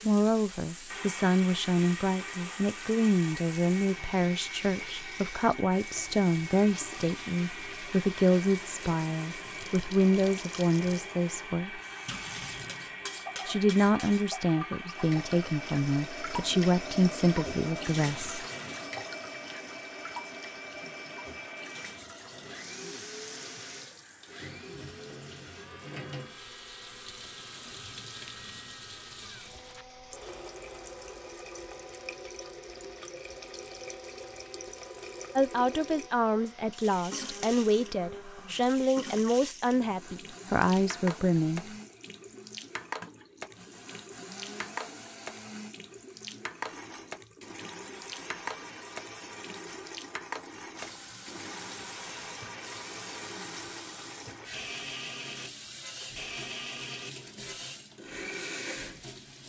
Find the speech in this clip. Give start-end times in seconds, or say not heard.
0.0-11.8, 13.4-18.4, 35.4-41.7.